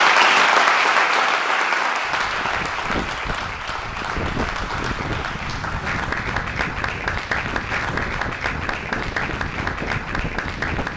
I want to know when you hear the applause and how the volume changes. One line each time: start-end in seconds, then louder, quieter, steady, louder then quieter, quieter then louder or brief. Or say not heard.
0.0-10.9 quieter.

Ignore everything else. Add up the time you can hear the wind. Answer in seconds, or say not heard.
9 s.